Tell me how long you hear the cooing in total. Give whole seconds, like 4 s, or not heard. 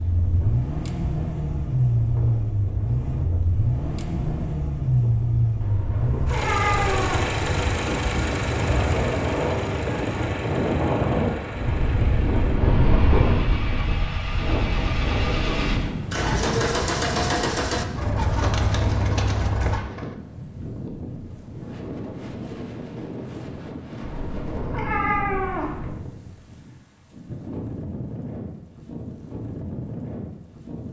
2 s.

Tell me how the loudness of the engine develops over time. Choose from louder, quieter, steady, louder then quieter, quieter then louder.
quieter then louder.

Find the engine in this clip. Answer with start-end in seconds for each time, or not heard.
0.0-19.8.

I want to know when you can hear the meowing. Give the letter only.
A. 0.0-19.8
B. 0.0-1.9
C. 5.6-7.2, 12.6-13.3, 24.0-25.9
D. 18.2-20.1
C.